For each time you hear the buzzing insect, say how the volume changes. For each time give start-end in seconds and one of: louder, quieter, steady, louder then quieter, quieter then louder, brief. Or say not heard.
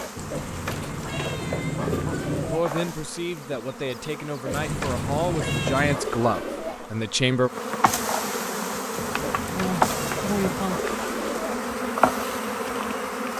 0.0-13.3 louder.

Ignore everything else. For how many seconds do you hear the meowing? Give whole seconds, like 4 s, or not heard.
6 s.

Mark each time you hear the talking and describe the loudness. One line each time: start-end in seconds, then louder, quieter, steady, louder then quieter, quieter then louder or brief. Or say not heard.
2.5-7.5 louder.